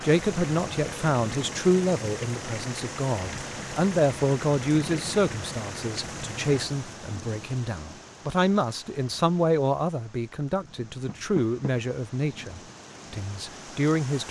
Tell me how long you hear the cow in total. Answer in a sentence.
The cow can't be heard in this clip.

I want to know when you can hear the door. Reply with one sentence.
The door can be heard from 11.1 to 11.8 s.